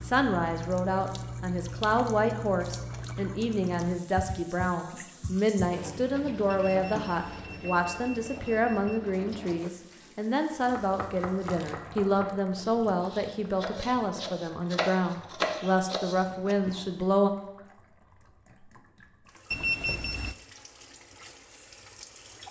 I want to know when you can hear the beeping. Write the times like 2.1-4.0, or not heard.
6.5-9.1, 19.5-20.4.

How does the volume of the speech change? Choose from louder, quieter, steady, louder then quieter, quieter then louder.
steady.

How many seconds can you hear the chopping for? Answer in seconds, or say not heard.
6 s.